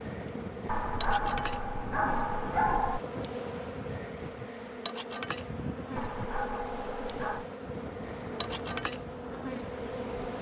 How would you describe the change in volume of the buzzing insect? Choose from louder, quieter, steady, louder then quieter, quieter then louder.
steady.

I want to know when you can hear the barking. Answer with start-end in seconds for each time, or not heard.
0.7-3.0, 6.0-7.5.